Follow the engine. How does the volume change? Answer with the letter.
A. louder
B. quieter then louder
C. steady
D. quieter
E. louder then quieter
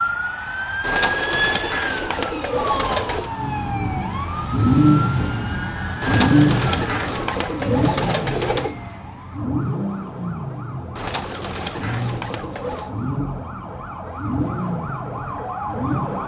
D.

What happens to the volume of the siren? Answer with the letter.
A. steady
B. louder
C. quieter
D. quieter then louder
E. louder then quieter
D.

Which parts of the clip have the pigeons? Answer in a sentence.
The pigeons can be heard from 0.8 to 3.3 s, from 6.0 to 8.8 s and from 10.9 to 12.9 s.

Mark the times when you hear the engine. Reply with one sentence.
The engine can be heard from 3.3 to 16.2 s.